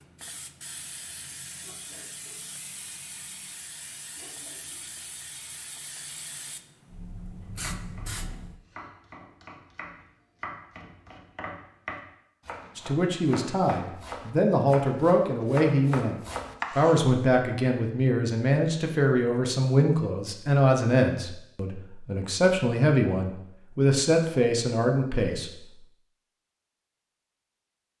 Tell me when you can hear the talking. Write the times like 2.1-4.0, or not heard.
12.8-16.1, 16.8-25.5.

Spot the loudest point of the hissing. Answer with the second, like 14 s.
8 s.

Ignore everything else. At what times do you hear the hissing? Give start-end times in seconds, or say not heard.
0.0-8.6.